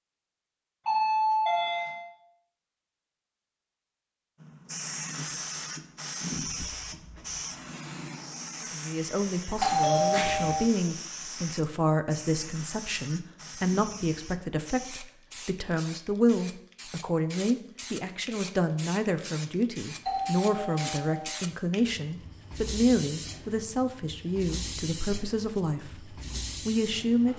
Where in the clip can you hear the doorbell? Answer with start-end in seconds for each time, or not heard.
0.8-2.0, 9.6-10.6, 20.1-21.4.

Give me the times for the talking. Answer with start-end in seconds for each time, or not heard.
8.6-27.3.